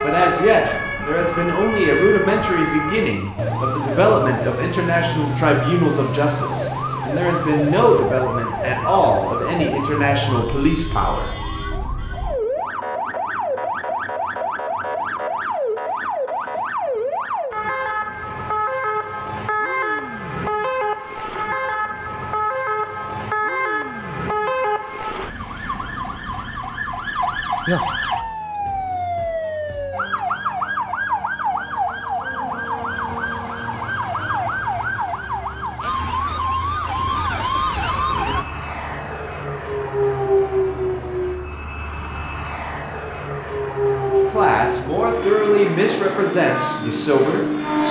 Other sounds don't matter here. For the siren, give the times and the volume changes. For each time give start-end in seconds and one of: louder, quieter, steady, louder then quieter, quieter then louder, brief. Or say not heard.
0.0-38.5 steady.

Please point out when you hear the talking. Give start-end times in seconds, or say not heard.
0.0-11.3, 44.3-47.8.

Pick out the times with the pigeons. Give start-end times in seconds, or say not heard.
not heard.